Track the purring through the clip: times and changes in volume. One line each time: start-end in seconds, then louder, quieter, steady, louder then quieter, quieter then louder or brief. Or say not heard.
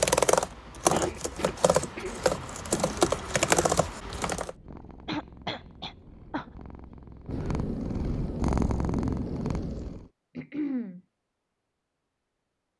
4.3-10.1 louder.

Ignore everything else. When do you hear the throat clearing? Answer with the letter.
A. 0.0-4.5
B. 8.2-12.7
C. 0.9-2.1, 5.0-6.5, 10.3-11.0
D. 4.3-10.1
C.